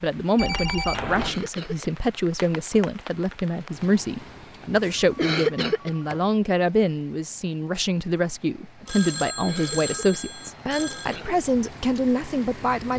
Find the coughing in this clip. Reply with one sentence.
You can hear the coughing from 1.1 to 1.9 s, from 5.2 to 5.9 s and from 9.4 to 11.4 s.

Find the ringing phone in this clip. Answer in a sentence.
The ringing phone can be heard from 0.3 to 1.4 s, from 4.8 to 6.2 s and from 8.8 to 11.2 s.